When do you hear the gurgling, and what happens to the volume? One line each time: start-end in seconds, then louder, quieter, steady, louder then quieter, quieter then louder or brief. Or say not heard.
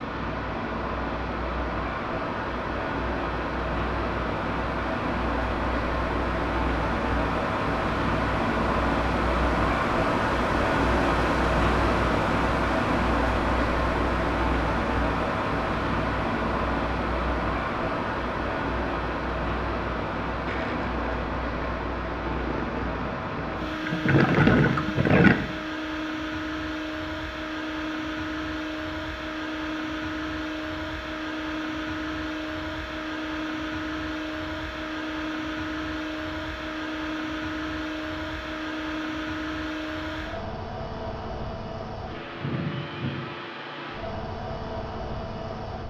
20.4-25.4 louder.